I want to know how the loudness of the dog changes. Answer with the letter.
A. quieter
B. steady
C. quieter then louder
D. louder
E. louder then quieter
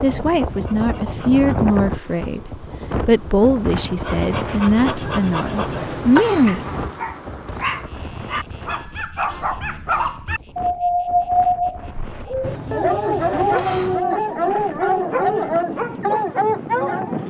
D.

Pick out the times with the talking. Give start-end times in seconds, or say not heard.
0.0-6.7.